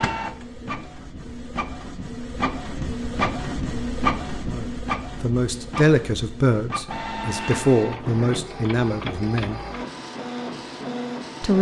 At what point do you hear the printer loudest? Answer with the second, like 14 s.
4 s.